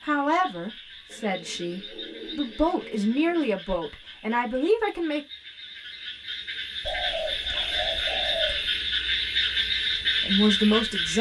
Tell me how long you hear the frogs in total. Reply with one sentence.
You can hear the frogs for 11 seconds altogether.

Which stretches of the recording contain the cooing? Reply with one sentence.
You can hear the cooing from 1.1 to 3.6 s and from 6.8 to 8.8 s.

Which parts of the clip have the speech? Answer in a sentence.
The speech can be heard from 0.0 to 5.2 s and from 10.2 to 11.1 s.